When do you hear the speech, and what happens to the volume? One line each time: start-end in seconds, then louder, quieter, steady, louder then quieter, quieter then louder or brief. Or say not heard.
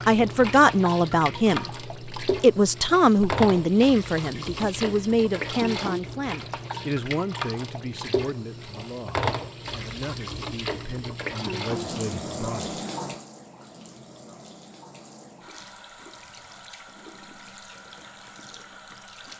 0.1-12.8 quieter.